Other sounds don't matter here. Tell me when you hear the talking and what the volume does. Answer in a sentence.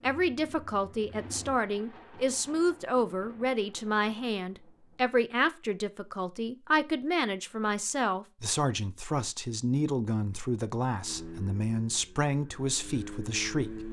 The talking can be heard from 0.0 to 13.8 s, at a steady volume.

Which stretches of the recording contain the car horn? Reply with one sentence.
You can't hear the car horn here.